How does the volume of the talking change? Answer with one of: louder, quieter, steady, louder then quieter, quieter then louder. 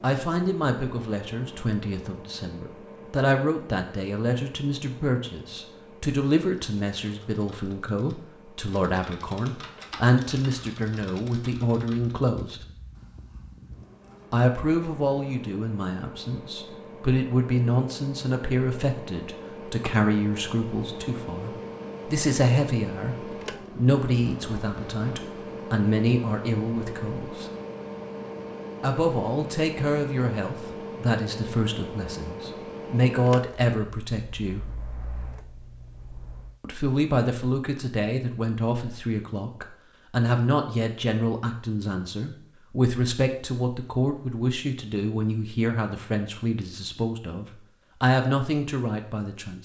steady.